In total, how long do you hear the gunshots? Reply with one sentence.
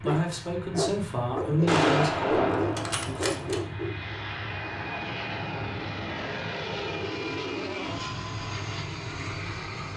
You can hear the gunshots for 2 seconds altogether.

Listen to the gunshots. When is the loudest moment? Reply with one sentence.
The loudest moment of the gunshots is at 2 seconds.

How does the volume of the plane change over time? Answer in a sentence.
The loudness of the plane goes up.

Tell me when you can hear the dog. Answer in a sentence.
You can hear the dog from 0.0 to 4.2 s.